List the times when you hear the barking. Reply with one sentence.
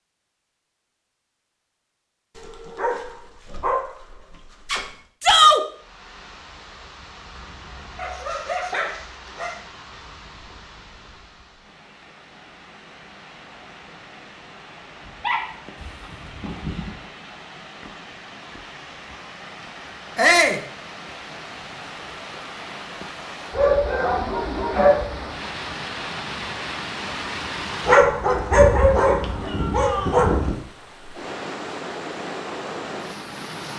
You can hear the barking from 2.4 to 4.9 s, from 8.0 to 9.6 s, from 15.1 to 16.9 s, from 23.5 to 25.2 s and from 27.9 to 30.6 s.